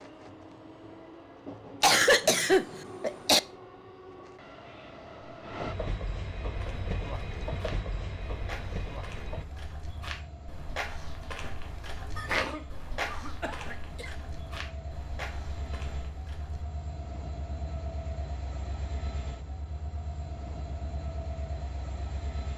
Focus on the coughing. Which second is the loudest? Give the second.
2 s.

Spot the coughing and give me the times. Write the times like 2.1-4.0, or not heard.
1.8-3.4, 12.2-14.1.